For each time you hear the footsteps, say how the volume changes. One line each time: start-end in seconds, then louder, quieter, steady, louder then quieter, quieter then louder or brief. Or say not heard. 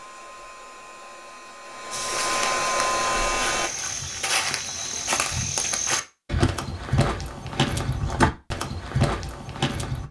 1.9-10.0 louder.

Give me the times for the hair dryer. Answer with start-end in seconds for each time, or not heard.
0.0-3.7.